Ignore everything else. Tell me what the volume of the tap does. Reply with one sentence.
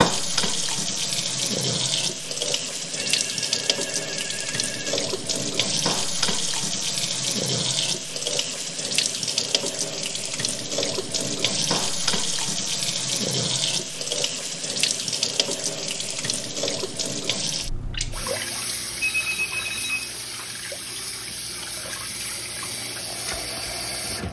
The volume of the tap goes down.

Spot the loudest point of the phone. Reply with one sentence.
The volume of the phone peaks at 19 seconds.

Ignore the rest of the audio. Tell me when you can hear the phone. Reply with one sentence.
You can hear the phone from 3.0 to 5.0 s and from 19.0 to 20.5 s.